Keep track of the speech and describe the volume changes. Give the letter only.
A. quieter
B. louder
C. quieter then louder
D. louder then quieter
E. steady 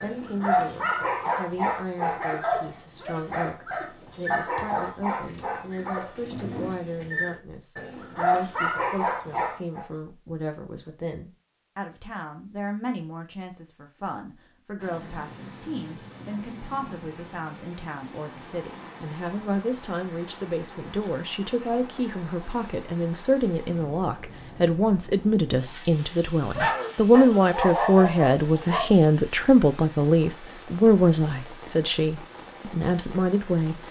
B.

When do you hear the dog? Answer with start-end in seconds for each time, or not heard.
0.0-9.8, 26.6-28.9.